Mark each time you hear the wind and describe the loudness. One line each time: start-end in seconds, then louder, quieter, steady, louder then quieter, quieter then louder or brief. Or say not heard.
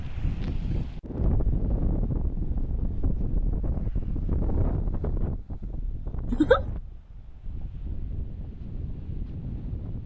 0.0-10.0 quieter.